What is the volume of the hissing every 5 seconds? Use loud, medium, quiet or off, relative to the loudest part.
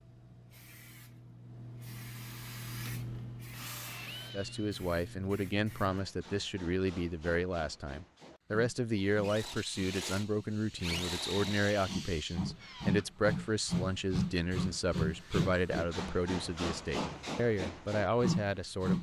medium, quiet, loud, loud.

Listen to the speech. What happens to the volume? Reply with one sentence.
The volume of the speech stays about the same.